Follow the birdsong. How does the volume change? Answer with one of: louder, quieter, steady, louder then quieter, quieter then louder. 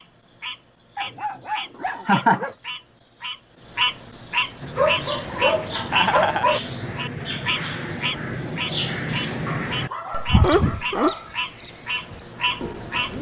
louder then quieter.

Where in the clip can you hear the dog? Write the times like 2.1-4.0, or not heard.
0.9-2.5, 4.8-6.6, 9.4-11.3.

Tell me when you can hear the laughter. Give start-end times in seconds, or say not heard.
1.8-2.5, 5.9-6.5, 10.1-11.2.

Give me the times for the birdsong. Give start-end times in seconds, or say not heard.
4.6-13.1.